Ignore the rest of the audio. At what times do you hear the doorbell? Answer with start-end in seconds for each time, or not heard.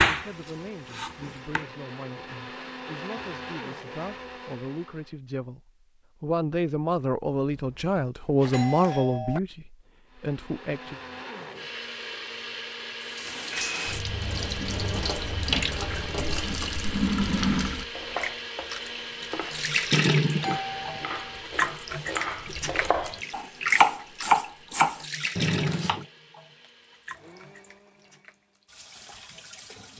7.5-9.4, 20.4-21.4.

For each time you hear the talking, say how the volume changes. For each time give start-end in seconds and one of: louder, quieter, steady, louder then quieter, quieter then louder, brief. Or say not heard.
0.1-11.0 louder.